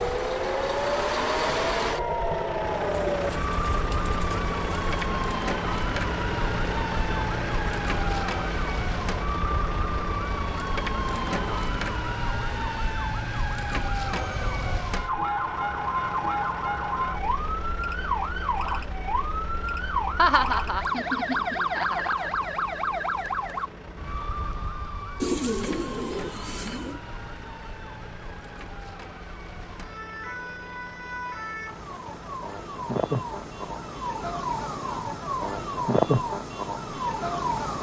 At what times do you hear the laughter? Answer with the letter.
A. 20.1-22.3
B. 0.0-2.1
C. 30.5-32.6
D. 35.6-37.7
A.